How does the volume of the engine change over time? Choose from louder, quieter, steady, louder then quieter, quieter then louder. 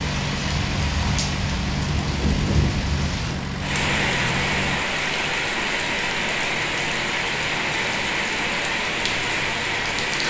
quieter.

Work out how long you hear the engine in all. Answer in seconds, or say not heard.
10 s.